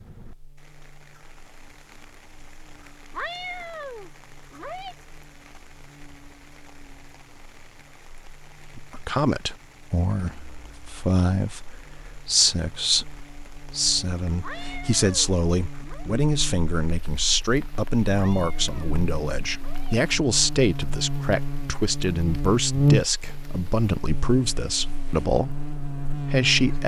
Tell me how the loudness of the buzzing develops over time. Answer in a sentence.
The loudness of the buzzing goes up.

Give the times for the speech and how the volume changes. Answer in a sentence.
The speech can be heard from 8.8 to 26.8 s, at a steady volume.